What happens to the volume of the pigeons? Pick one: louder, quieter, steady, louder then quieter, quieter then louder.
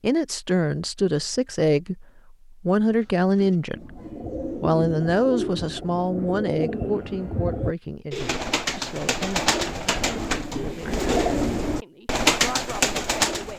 louder.